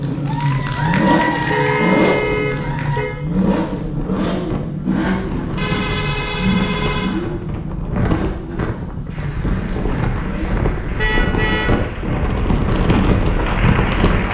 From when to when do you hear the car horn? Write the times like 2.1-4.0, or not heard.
1.5-3.1, 5.5-7.1, 10.9-11.8.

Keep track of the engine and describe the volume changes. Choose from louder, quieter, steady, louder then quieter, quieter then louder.
quieter.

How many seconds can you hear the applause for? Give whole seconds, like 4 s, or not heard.
8 s.